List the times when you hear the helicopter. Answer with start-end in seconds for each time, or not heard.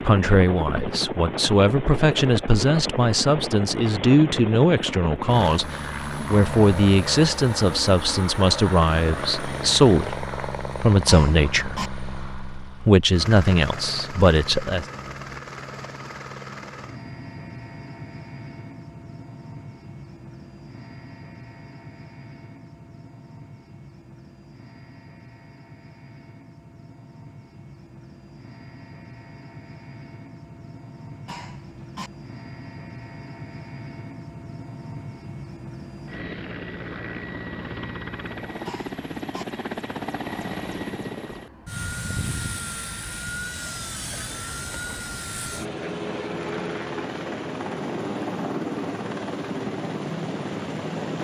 0.0-51.1.